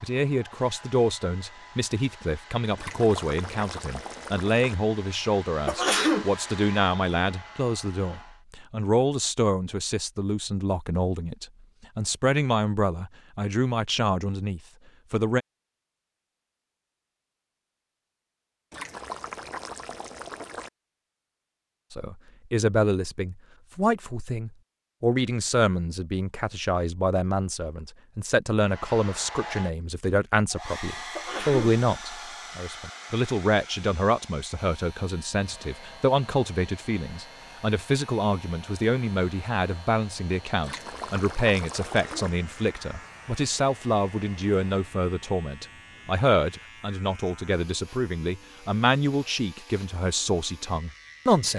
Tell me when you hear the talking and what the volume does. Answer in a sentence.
The talking can be heard from 0.0 to 15.4 s, at a steady volume; and from 21.9 to 51.5 s, at a steady volume.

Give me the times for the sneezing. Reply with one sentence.
You can hear the sneezing from 5.7 to 6.3 s, from 31.1 to 31.8 s and from 41.9 to 42.3 s.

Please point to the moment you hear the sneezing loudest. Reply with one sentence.
The volume of the sneezing peaks at 6 seconds.